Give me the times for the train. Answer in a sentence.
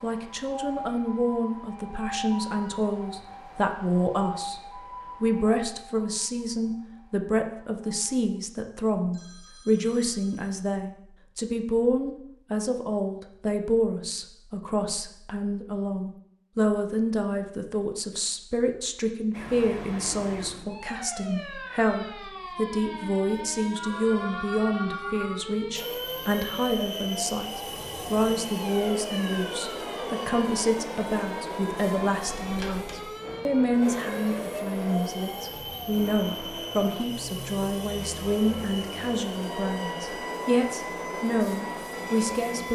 The train can be heard from 25.8 to 42.6 s.